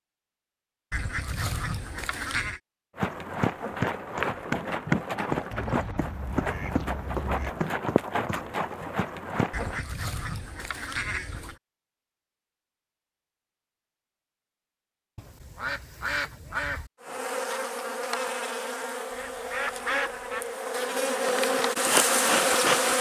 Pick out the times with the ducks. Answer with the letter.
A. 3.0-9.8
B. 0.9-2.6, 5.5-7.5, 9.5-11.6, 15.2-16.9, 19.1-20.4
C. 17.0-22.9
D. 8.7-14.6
B.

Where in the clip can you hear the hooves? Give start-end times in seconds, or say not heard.
3.0-9.8.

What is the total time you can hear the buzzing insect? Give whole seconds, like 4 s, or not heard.
6 s.